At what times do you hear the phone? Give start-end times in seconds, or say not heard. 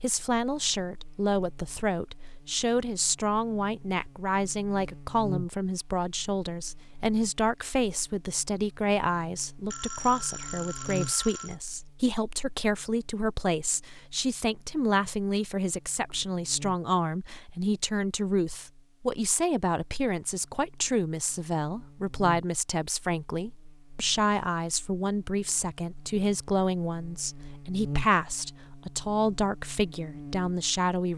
9.7-11.6.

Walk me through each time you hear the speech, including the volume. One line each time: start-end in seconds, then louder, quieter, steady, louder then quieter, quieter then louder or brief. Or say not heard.
0.0-31.1 steady.